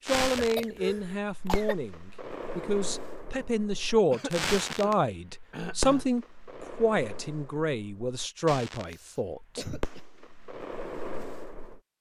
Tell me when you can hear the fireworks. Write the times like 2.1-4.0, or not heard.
0.1-11.8.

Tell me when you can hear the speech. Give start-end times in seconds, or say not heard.
0.1-9.7.